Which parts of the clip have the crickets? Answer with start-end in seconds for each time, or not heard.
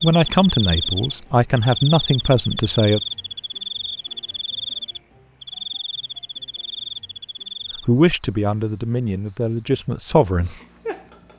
0.0-11.3.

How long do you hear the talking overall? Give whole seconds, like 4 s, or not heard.
6 s.